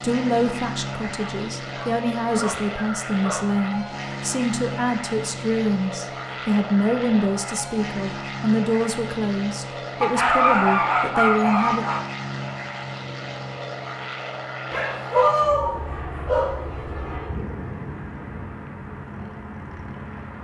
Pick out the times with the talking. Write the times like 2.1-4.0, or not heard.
0.0-11.8.